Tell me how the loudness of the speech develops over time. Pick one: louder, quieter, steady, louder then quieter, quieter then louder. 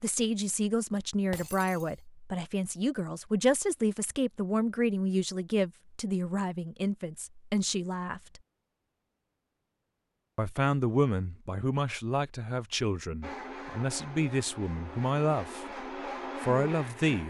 steady.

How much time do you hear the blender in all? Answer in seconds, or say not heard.
4 s.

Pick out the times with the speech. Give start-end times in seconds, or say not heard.
0.0-8.4, 10.3-17.2.